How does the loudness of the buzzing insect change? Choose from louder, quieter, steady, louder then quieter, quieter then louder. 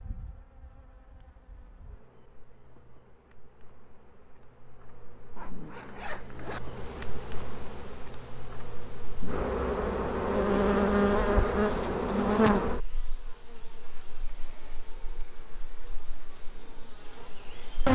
louder then quieter.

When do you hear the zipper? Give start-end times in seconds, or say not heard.
5.3-6.6.